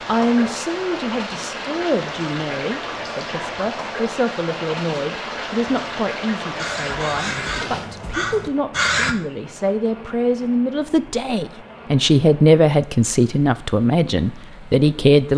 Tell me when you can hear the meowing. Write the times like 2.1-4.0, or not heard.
not heard.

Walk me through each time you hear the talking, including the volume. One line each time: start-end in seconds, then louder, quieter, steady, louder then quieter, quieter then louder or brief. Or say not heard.
0.1-15.3 louder.